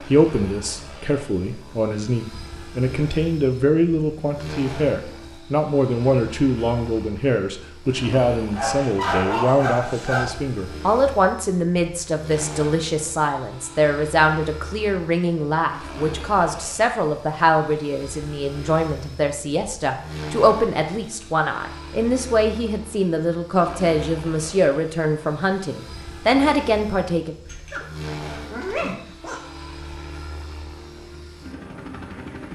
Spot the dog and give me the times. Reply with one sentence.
You can hear the dog from 8.6 to 10.2 s, from 27.4 to 27.9 s and from 28.5 to 29.4 s.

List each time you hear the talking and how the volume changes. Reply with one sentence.
You can hear the talking from 0.1 to 27.4 s, at a steady volume.